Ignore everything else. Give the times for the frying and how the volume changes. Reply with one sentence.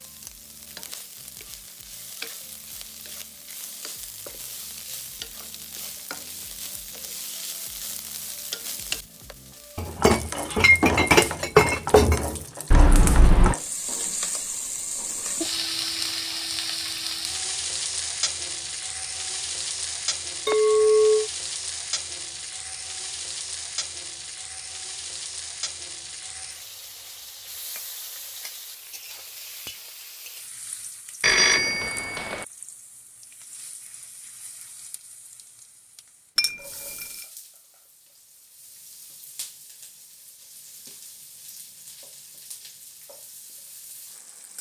The frying can be heard from 0.0 to 44.5 s, getting louder then quieter.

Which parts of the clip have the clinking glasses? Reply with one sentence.
You can hear the clinking glasses from 9.8 to 12.3 s, from 20.4 to 21.3 s and from 36.4 to 37.0 s.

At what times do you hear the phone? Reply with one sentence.
The phone can be heard from 12.7 to 13.6 s and from 31.2 to 32.5 s.